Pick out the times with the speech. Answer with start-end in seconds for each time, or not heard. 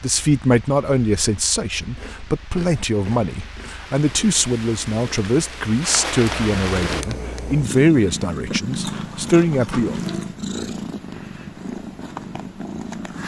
0.0-9.9.